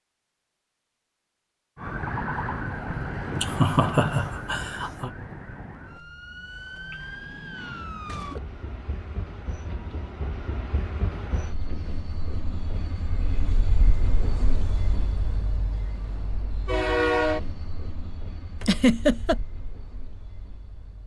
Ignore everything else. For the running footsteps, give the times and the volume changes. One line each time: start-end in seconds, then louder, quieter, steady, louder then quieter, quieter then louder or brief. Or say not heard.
not heard.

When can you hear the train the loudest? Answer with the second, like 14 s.
17 s.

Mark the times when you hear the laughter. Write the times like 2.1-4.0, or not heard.
3.4-5.1, 18.6-19.4.